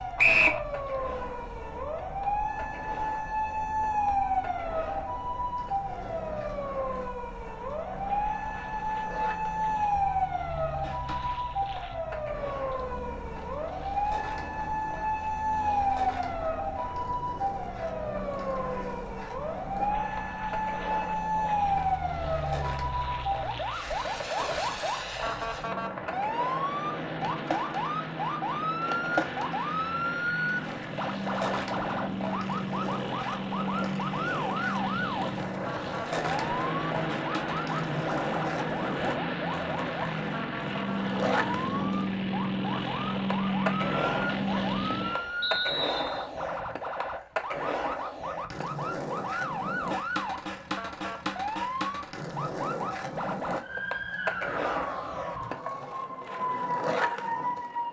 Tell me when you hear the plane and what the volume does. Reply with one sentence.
The plane can be heard from 0.0 to 45.5 s, getting louder.